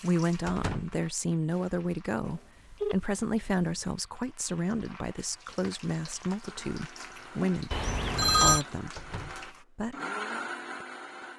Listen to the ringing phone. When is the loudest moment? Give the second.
8 s.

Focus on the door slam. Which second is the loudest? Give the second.
1 s.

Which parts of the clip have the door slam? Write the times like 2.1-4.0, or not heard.
0.5-1.0, 8.9-9.5.